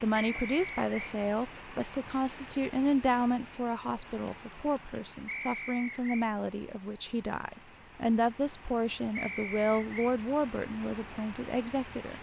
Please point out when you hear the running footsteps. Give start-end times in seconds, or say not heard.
not heard.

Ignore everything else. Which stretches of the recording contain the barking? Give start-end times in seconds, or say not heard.
not heard.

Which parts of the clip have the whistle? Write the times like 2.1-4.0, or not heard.
0.1-1.1, 5.2-6.3, 9.2-10.2.